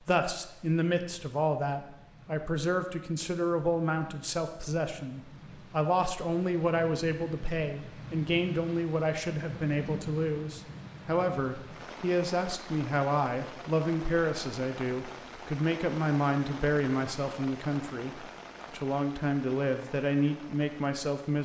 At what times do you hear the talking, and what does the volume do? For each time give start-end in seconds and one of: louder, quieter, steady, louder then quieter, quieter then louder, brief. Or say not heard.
0.1-21.4 steady.